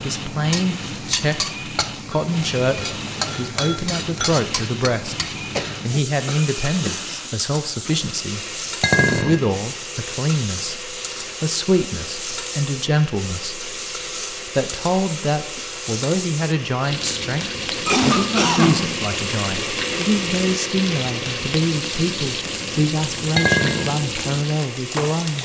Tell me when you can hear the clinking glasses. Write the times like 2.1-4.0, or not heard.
2.1-4.3, 8.8-9.4, 23.4-23.9.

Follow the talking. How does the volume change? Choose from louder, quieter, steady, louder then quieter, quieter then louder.
steady.